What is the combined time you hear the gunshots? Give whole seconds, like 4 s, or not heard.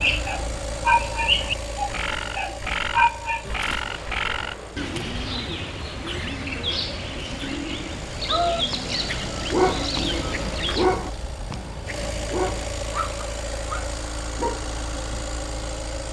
2 s.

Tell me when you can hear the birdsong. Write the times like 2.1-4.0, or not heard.
0.0-10.9.